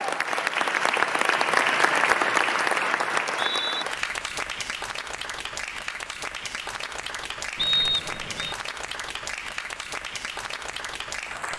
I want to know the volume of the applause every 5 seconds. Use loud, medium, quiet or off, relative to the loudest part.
loud, medium, medium.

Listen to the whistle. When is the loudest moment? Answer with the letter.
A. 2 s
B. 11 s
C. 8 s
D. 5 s
C.